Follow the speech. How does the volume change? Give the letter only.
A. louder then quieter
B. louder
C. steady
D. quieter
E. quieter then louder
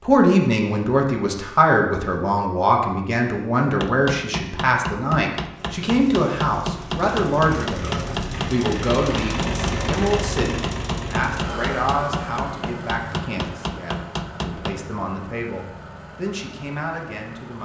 D.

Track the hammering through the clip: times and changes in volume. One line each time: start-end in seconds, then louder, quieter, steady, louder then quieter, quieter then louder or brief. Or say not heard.
3.6-14.8 steady.